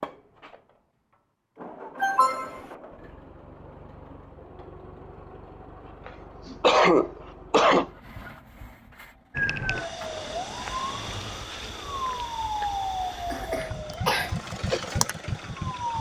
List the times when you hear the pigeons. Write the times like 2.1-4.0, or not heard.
not heard.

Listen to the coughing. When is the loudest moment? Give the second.
7 s.